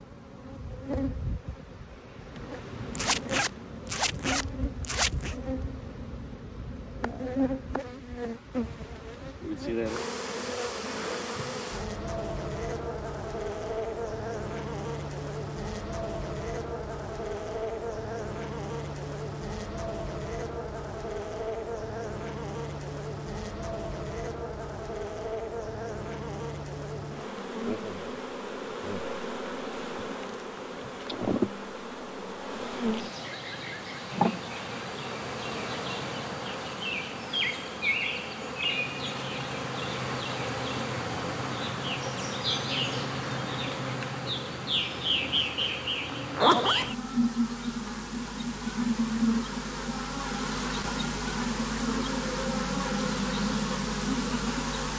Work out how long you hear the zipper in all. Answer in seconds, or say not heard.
3 s.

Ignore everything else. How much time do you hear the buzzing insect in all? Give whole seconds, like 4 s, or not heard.
55 s.